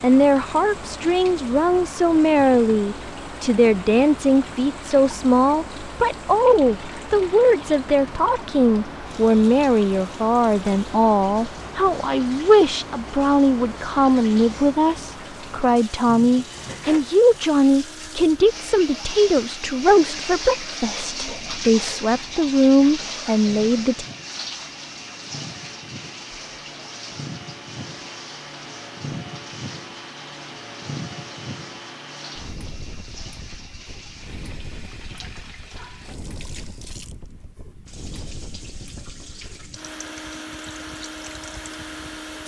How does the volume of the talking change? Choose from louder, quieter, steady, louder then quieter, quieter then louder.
steady.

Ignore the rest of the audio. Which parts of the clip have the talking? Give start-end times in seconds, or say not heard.
0.0-24.1.